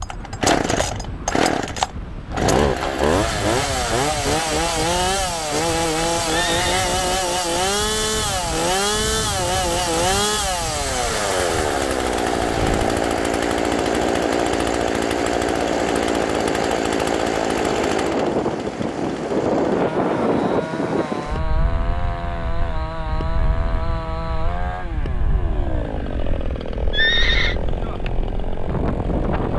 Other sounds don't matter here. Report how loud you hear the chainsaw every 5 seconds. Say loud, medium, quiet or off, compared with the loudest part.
loud, loud, loud, loud, medium, medium.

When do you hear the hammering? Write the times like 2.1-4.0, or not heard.
not heard.